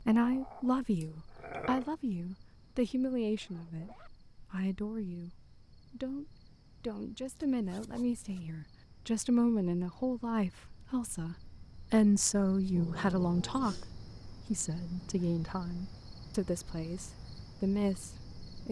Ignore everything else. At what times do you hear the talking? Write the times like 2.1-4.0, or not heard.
0.1-18.6.